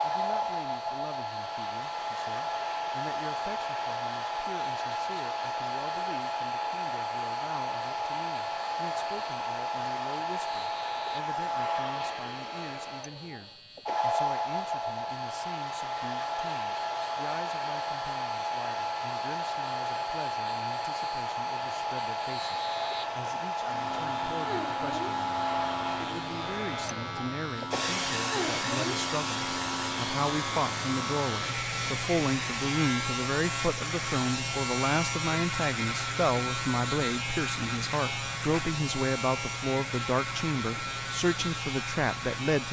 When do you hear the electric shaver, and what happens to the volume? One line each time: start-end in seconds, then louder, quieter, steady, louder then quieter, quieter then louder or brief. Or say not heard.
0.0-42.6 louder.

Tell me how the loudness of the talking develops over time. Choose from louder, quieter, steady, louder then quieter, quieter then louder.
louder.